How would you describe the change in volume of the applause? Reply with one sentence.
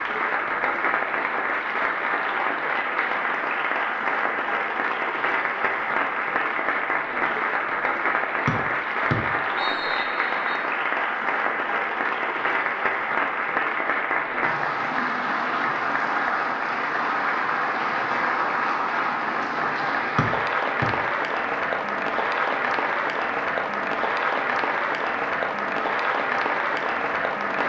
The volume of the applause stays about the same.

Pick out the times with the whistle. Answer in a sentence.
You can hear the whistle from 8.4 to 10.6 s and from 20.1 to 20.9 s.